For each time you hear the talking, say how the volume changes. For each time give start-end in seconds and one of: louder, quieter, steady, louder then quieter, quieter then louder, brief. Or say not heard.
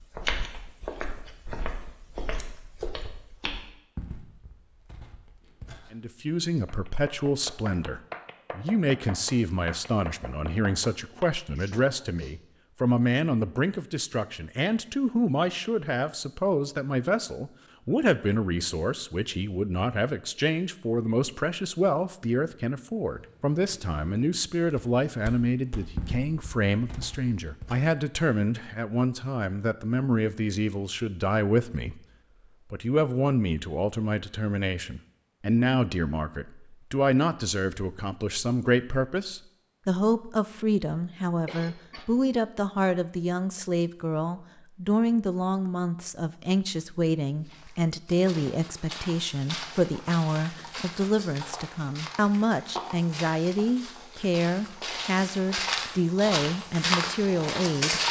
5.9-32.0 steady
32.7-58.0 steady.